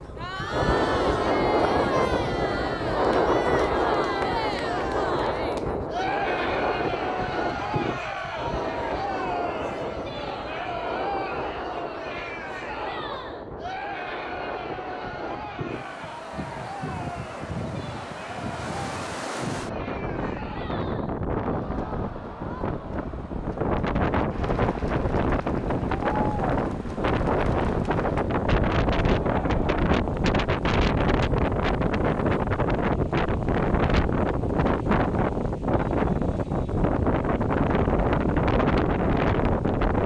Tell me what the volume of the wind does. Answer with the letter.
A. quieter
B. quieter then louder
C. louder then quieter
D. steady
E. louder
B.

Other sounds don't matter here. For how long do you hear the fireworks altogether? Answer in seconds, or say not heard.
not heard.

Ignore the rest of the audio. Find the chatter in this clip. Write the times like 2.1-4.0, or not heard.
0.0-29.9.